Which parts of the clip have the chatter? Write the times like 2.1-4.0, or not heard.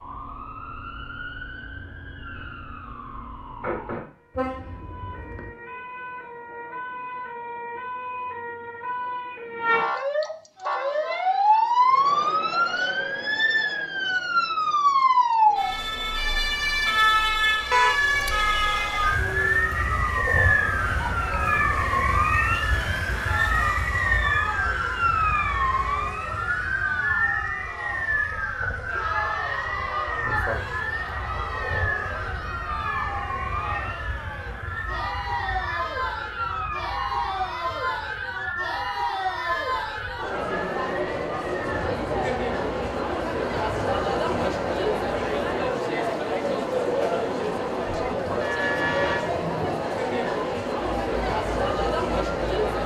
10.6-52.8.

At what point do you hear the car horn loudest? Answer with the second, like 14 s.
18 s.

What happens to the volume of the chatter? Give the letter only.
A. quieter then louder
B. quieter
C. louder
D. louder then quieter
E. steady
C.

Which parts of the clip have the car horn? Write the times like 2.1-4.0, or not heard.
4.3-5.5, 17.7-18.1, 48.4-49.3.